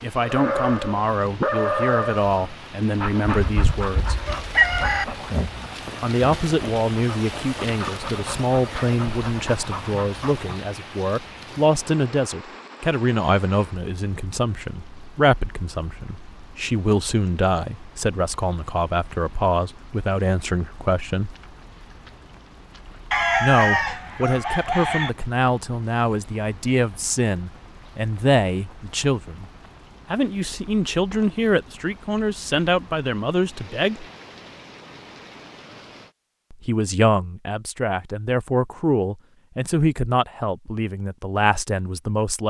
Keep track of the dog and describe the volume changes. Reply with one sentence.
The loudness of the dog goes down.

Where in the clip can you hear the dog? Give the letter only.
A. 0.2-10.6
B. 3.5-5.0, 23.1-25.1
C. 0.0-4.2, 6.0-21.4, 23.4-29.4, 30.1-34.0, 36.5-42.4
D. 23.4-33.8
A.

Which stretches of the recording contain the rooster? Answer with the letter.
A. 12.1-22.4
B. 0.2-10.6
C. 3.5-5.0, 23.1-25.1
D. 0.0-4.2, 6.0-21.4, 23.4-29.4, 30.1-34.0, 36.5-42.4
C.